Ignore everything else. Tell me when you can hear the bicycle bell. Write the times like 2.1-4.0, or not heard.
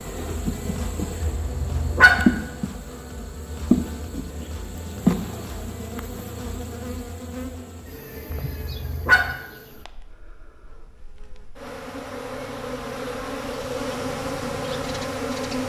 not heard.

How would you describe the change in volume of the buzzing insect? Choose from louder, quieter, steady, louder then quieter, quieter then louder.
quieter then louder.